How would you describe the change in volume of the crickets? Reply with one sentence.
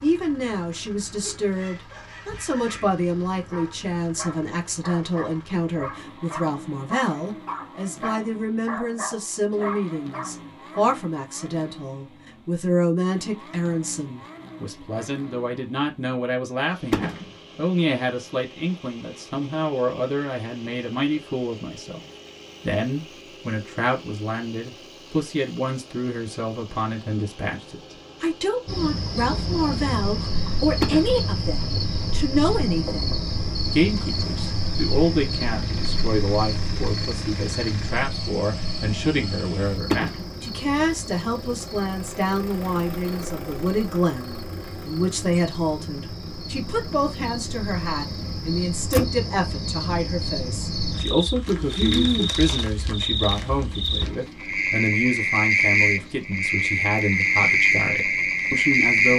The loudness of the crickets goes down, then up.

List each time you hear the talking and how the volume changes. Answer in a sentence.
The talking can be heard from 0.0 to 59.1 s, at a steady volume.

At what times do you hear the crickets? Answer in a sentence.
The crickets can be heard from 28.6 to 59.1 s.